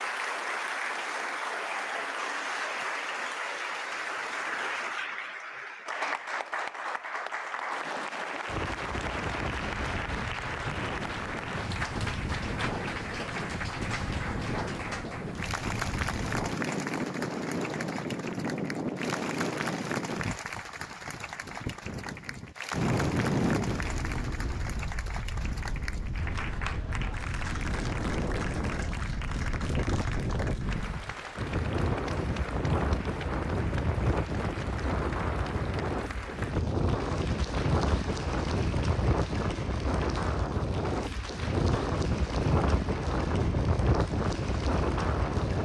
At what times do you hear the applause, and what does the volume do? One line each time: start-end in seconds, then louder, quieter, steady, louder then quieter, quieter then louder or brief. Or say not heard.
0.0-45.5 quieter.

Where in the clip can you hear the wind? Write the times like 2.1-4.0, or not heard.
8.4-45.5.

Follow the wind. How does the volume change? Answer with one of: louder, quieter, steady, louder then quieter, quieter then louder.
louder.